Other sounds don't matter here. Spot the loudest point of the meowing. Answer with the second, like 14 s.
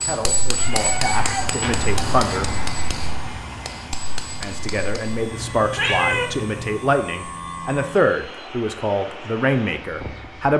6 s.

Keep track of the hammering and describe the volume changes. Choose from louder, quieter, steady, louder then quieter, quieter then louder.
quieter.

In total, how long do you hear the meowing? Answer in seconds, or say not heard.
3 s.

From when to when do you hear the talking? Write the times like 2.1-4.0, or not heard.
0.0-2.5, 4.4-10.5.